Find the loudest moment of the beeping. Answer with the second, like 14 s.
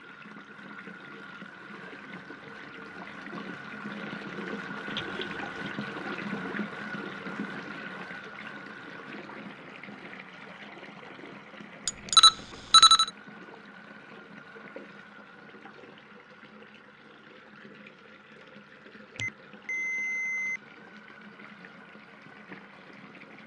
13 s.